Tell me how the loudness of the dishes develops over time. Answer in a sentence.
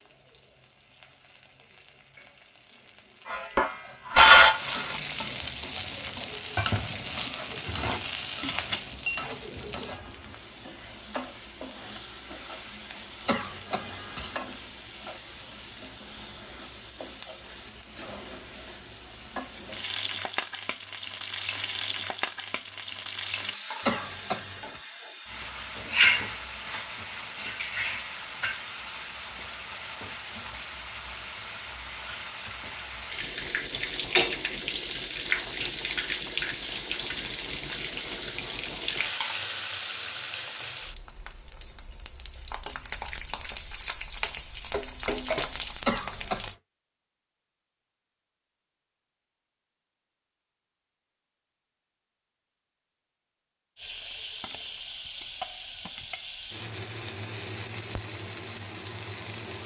The volume of the dishes goes down, then up.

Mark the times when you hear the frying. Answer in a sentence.
You can hear the frying from 0.0 to 46.5 s and from 53.8 to 59.6 s.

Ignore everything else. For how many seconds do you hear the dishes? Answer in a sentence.
The dishes can be heard for 7 seconds in total.